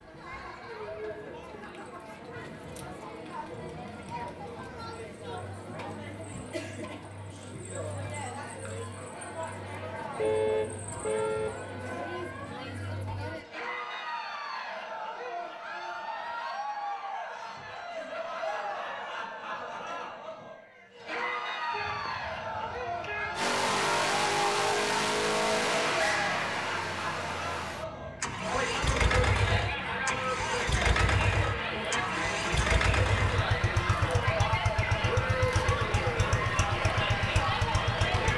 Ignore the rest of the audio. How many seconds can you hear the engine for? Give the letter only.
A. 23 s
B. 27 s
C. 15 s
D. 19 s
C.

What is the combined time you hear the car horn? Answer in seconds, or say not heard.
3 s.